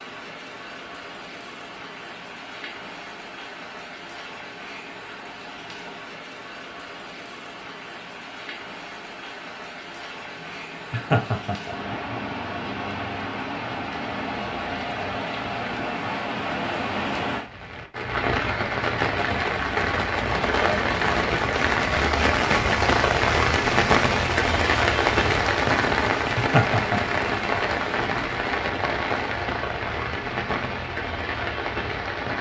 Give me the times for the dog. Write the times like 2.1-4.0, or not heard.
not heard.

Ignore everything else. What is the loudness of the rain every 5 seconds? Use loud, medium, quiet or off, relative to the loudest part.
quiet, quiet, medium, medium, loud, loud, medium.